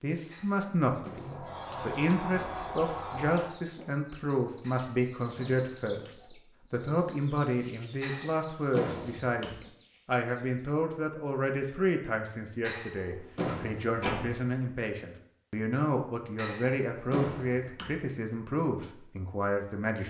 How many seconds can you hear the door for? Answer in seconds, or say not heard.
4 s.